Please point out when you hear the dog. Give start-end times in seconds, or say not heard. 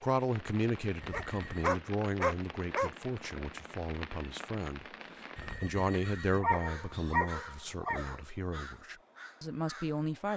1.1-2.9, 6.4-8.2.